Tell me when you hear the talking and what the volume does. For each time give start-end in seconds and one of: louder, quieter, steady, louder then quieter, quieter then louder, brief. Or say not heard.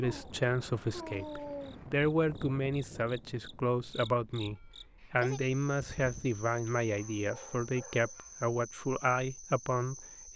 0.0-10.3 steady.